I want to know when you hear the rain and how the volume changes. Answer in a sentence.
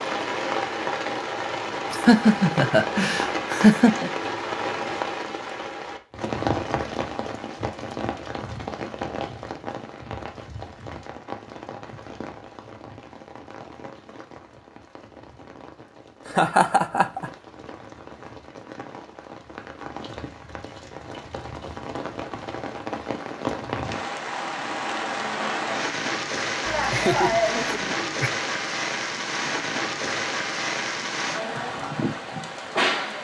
The rain can be heard from 0.0 to 33.1 s, getting quieter then louder.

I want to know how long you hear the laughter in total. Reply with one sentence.
The laughter can be heard for 5 seconds in total.